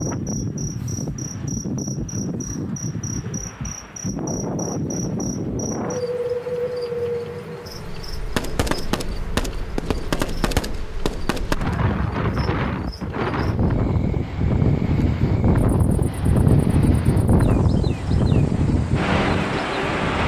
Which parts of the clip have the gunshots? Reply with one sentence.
You can hear the gunshots from 8.3 to 11.8 s.